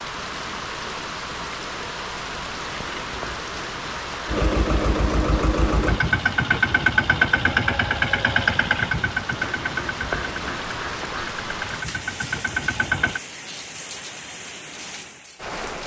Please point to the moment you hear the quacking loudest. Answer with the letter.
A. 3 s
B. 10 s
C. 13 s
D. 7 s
B.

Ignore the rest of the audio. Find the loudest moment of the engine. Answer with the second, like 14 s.
7 s.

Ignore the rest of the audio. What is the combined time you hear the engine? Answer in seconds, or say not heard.
9 s.